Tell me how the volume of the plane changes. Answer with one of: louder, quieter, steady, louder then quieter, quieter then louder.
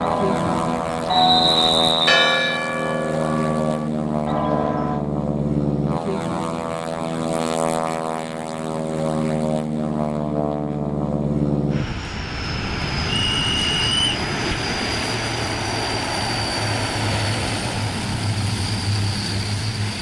steady.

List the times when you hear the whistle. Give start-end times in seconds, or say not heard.
1.1-2.6, 13.1-14.2.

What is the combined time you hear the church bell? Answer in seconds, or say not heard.
5 s.